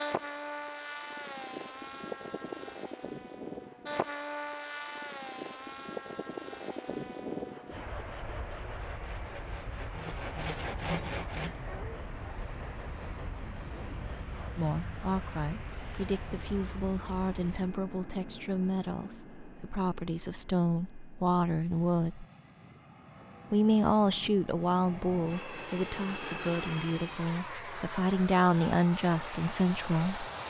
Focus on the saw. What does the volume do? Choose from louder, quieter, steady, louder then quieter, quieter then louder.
louder then quieter.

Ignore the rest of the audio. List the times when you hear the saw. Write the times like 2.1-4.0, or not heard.
7.5-14.8.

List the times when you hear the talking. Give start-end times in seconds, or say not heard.
14.6-22.2, 23.5-30.2.